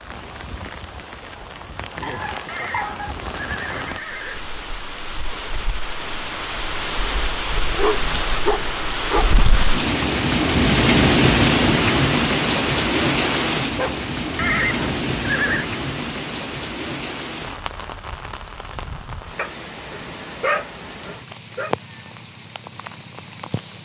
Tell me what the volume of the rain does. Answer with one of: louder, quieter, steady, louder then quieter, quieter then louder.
louder then quieter.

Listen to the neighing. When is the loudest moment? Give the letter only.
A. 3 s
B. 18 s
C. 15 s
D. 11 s
C.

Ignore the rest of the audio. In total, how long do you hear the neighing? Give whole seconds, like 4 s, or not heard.
3 s.